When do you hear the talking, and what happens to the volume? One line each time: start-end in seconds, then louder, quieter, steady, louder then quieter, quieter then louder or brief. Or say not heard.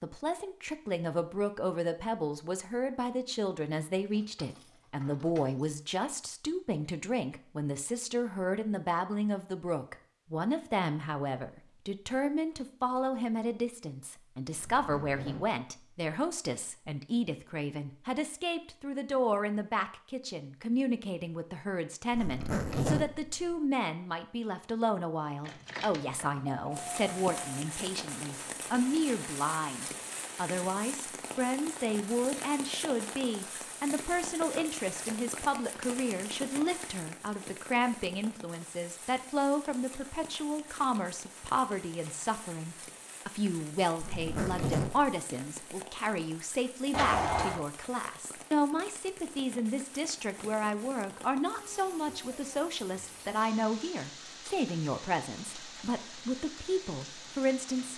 0.0-57.9 steady.